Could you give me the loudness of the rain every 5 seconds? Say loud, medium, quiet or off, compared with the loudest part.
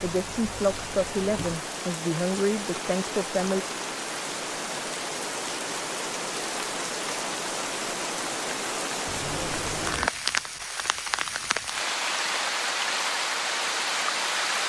medium, loud, loud.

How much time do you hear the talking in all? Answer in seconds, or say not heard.
4 s.